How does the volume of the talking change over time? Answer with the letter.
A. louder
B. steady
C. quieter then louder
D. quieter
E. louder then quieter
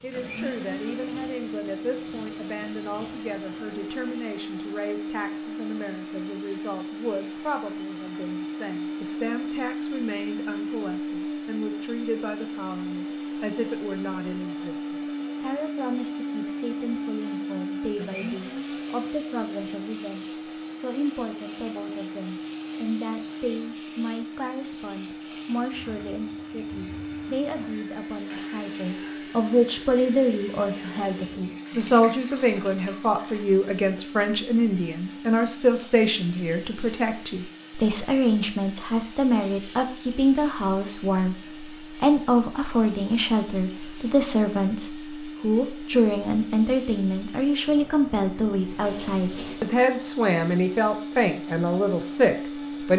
A.